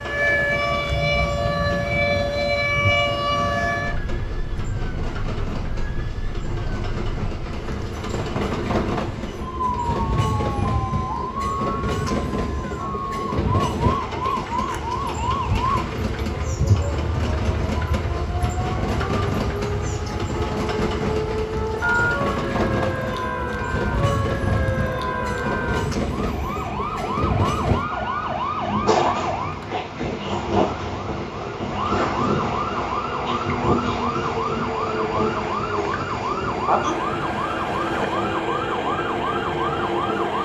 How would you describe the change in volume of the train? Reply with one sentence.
The volume of the train goes up.